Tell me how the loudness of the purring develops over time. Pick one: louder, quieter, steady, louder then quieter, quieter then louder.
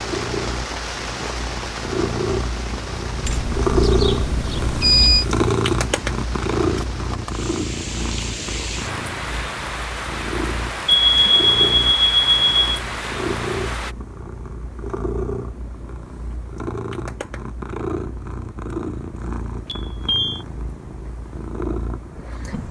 quieter.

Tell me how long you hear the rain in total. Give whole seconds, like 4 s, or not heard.
14 s.